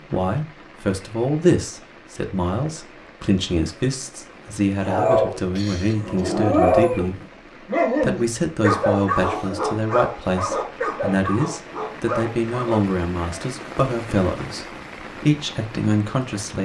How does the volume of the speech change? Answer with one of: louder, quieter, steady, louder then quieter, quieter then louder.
steady.